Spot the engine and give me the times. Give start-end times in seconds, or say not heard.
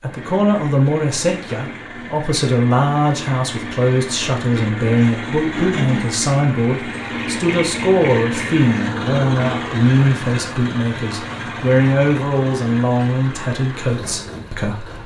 0.0-15.0.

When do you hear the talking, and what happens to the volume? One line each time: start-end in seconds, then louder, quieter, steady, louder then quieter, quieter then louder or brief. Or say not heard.
0.0-15.0 steady.